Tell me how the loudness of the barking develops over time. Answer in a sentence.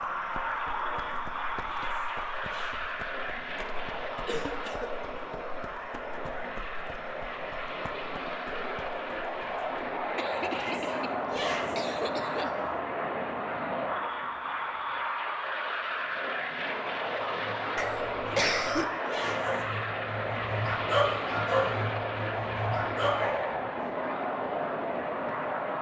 The loudness of the barking goes up.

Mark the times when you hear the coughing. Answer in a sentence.
The coughing can be heard from 4.2 to 4.9 s, from 10.2 to 12.8 s and from 17.8 to 18.9 s.